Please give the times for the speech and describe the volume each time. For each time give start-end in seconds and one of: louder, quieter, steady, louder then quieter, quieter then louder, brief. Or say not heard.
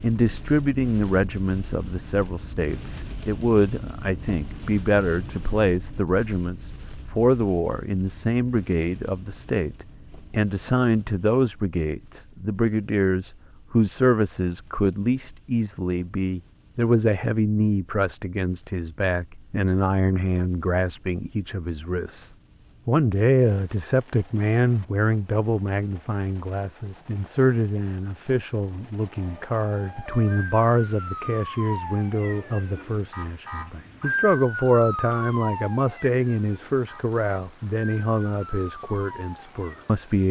0.0-40.2 steady.